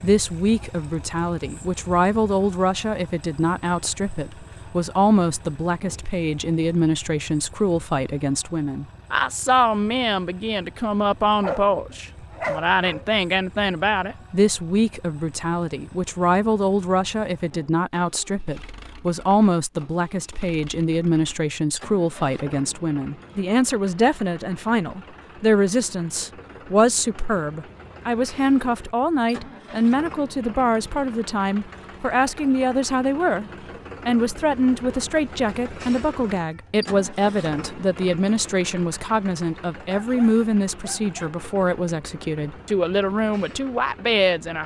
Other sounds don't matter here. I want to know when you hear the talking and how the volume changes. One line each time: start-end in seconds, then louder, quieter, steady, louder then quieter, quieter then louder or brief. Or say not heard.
0.0-44.6 steady.